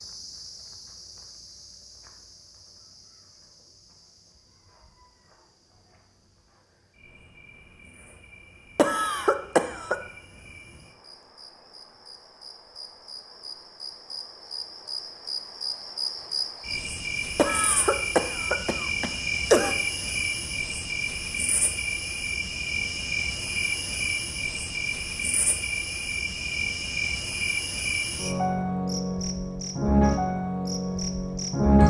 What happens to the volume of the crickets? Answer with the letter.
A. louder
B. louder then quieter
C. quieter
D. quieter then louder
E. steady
A.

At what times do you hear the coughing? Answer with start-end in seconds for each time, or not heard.
8.8-9.9, 17.4-19.8.